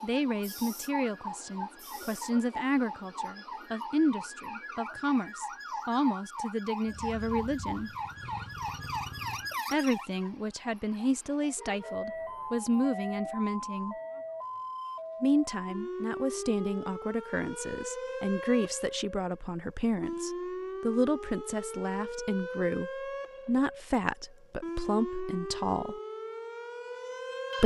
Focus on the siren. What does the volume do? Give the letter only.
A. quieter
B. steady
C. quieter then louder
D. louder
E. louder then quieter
B.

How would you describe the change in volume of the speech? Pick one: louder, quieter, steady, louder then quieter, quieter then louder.
steady.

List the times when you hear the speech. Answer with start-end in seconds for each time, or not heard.
0.0-7.9, 9.7-13.9, 15.2-25.9.